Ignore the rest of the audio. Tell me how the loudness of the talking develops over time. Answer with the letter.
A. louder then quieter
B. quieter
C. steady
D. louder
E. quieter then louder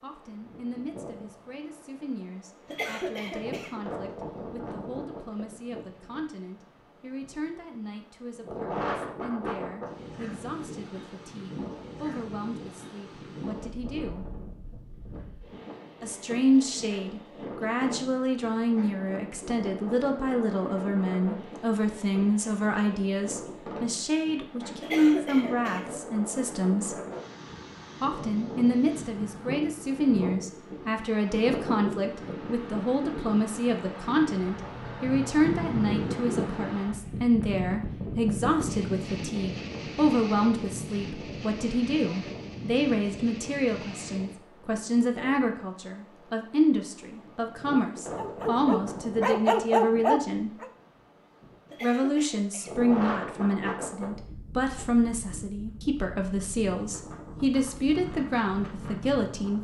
D.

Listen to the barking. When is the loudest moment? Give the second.
50 s.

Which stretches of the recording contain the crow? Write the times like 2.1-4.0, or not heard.
not heard.